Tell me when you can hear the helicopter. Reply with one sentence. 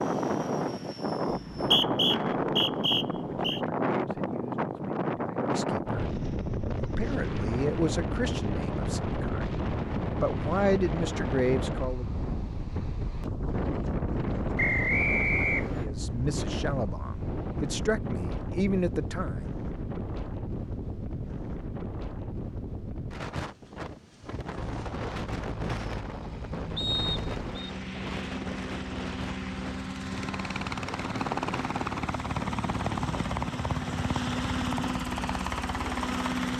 The helicopter can be heard from 0.0 to 1.8 s and from 24.5 to 36.5 s.